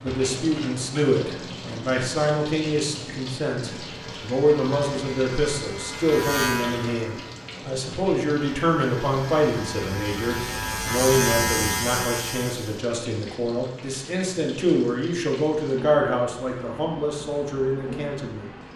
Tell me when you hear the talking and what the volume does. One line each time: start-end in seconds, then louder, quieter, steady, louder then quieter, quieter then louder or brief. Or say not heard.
0.0-18.5 steady.